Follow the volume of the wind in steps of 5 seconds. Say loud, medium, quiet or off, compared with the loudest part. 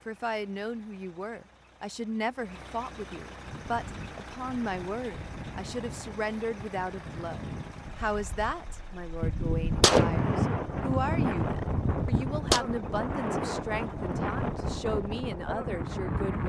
quiet, medium, loud, loud.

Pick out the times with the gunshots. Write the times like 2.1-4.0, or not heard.
9.2-12.7.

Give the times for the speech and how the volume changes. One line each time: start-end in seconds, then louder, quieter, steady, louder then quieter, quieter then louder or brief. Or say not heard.
0.1-16.4 steady.